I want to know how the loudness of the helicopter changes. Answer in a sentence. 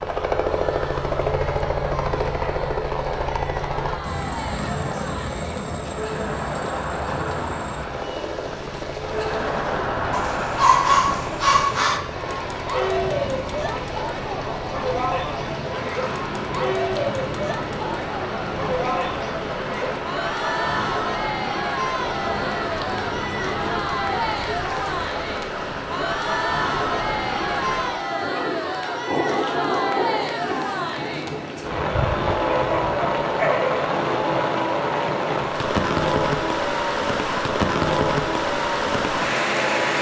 The loudness of the helicopter goes down.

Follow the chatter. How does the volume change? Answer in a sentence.
The volume of the chatter goes up.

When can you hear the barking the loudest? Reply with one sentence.
The loudest moment of the barking is at 11 seconds.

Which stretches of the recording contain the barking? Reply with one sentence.
The barking can be heard from 10.1 to 12.0 s and from 32.5 to 34.0 s.